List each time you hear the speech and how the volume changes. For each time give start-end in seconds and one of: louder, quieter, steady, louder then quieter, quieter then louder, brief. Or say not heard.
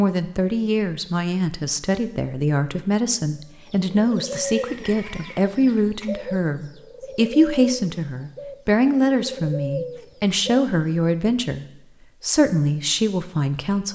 0.0-13.9 steady.